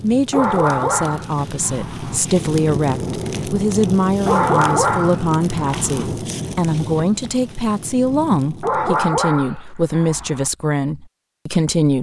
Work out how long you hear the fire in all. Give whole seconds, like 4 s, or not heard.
9 s.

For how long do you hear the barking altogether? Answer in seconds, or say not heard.
6 s.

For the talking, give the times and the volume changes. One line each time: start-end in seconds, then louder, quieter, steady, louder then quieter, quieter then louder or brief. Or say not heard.
0.0-11.9 steady.